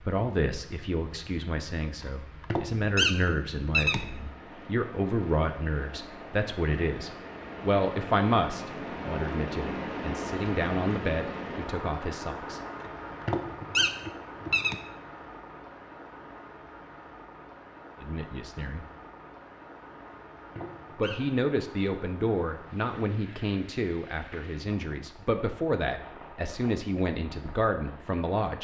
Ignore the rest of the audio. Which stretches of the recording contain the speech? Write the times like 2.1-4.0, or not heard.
0.0-12.6, 18.0-18.9, 20.9-28.5.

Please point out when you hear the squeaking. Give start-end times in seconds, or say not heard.
2.0-4.0, 12.8-14.8, 20.1-21.4.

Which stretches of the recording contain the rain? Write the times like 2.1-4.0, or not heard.
0.0-28.5.